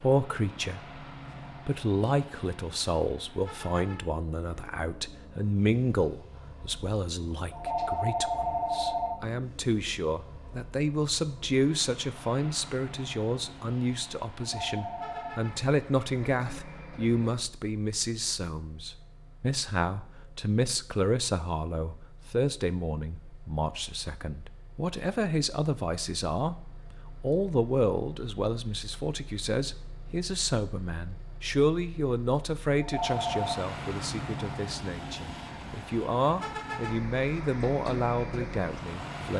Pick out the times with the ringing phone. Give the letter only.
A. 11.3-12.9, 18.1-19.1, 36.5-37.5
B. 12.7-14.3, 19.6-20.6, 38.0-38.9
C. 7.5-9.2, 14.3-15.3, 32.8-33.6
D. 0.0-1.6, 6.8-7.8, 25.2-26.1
C.